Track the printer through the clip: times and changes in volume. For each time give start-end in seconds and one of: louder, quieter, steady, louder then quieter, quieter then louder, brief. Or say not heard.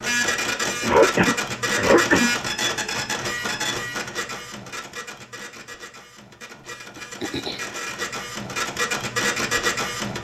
0.0-10.1 quieter then louder.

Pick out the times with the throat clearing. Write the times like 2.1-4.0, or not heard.
0.8-2.3, 7.0-7.7.